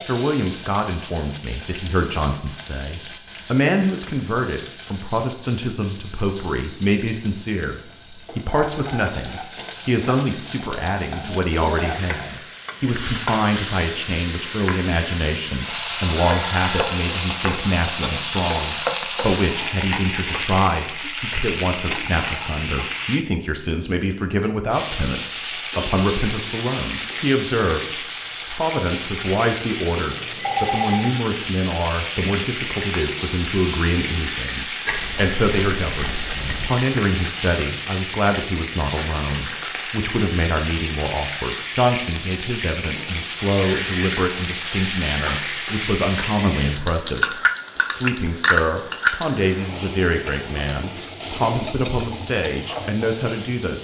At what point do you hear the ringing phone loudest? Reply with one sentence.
The volume of the ringing phone peaks at 31 seconds.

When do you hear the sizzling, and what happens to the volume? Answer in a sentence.
The sizzling can be heard from 0.0 to 23.2 s, getting louder; and from 24.7 to 53.7 s, at a steady volume.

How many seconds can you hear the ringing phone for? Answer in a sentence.
You can hear the ringing phone for 2 seconds altogether.